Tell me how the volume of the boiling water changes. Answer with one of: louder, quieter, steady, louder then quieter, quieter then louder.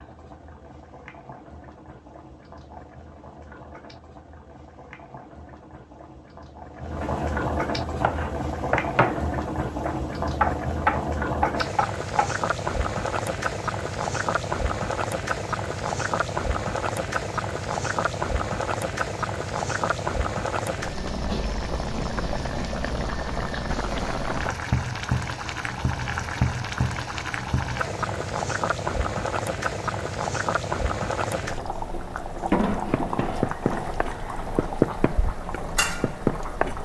louder.